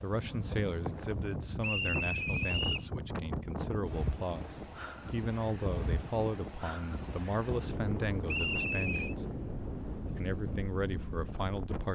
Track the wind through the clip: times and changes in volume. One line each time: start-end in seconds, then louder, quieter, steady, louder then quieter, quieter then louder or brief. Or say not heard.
0.0-11.9 steady.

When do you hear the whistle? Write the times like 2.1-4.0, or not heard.
1.6-2.9, 8.2-9.2.